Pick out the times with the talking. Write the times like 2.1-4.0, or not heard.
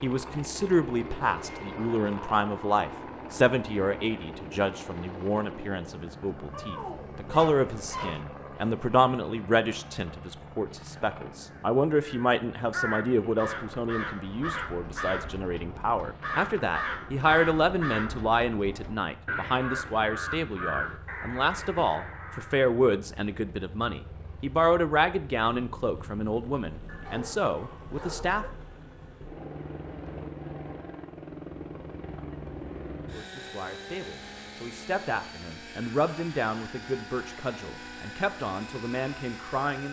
0.0-28.4, 33.1-39.8.